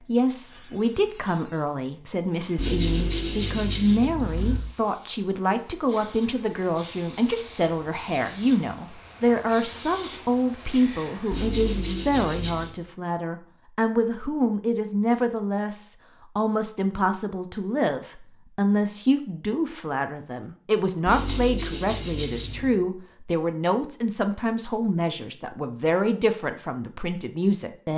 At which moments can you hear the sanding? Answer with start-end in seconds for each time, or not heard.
2.5-4.6, 11.3-12.8, 21.1-22.8.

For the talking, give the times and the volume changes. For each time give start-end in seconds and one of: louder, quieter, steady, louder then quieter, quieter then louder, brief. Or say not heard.
0.1-27.9 steady.